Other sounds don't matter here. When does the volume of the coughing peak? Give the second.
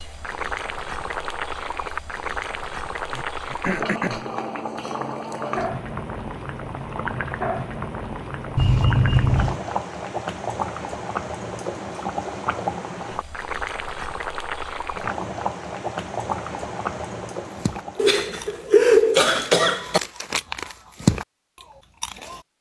19 s.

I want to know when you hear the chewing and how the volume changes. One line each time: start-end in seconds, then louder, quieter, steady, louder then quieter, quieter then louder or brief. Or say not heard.
17.4-22.4 louder then quieter.